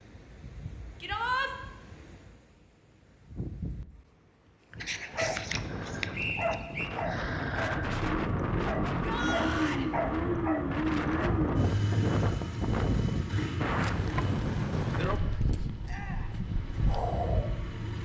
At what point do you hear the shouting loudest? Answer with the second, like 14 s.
1 s.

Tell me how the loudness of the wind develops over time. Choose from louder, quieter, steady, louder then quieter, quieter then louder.
louder.